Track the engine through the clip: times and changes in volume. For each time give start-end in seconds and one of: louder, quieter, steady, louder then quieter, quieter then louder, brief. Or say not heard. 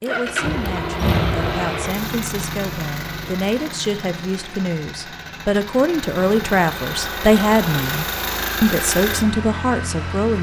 0.0-10.3 quieter then louder.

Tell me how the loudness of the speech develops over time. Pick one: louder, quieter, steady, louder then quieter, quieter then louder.
louder.